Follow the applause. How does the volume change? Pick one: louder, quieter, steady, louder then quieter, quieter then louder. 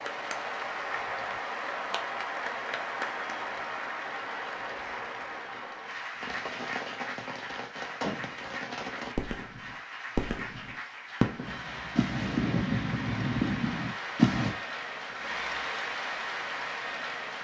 quieter then louder.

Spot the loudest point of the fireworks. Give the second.
14 s.